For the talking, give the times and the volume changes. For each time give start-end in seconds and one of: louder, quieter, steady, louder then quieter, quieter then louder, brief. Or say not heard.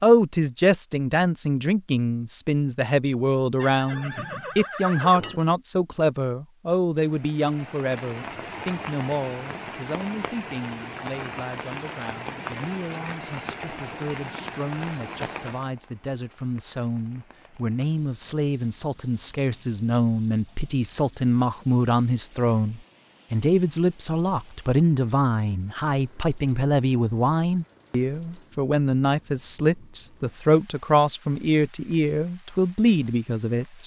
0.0-33.8 quieter then louder.